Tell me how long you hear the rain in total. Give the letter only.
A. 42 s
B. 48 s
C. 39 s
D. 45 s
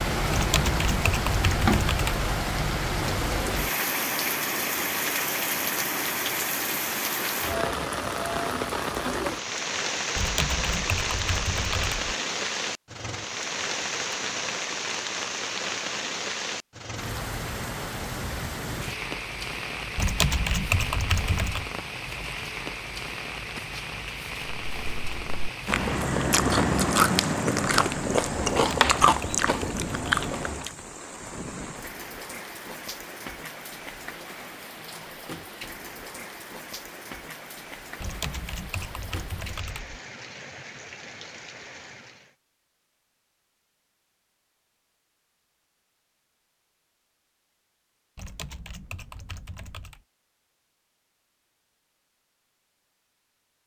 A.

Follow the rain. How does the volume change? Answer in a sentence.
The loudness of the rain goes down.